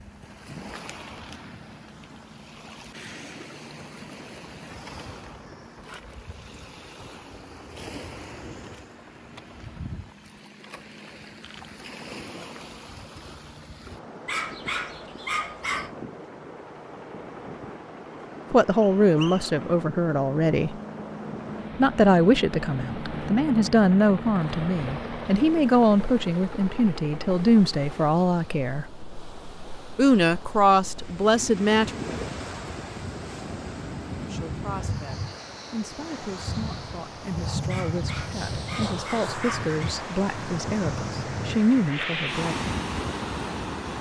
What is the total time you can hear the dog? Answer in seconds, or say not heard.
4 s.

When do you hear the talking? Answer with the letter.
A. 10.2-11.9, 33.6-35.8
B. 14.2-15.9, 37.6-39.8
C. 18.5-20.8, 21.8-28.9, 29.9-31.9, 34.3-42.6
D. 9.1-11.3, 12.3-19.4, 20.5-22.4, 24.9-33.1
C.